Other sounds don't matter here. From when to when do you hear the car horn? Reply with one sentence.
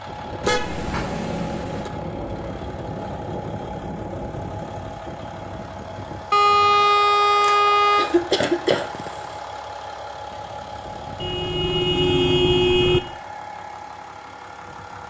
The car horn can be heard from 0.4 to 1.9 s, from 6.3 to 8.1 s and from 11.2 to 13.0 s.